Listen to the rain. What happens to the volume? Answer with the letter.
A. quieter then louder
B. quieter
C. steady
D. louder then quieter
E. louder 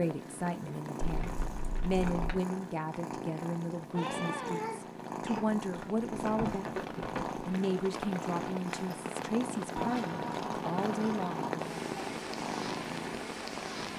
E.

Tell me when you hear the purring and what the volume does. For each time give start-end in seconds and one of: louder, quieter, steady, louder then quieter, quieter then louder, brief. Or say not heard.
0.0-13.9 steady.